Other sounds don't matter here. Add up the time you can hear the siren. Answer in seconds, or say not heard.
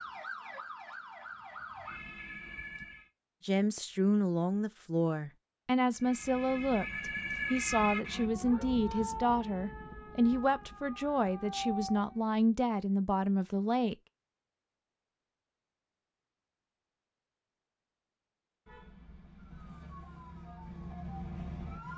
12 s.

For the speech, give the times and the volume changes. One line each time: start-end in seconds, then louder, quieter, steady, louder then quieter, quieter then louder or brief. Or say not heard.
3.5-13.9 steady.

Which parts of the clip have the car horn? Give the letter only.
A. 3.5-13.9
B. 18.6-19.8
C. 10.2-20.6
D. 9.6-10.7
B.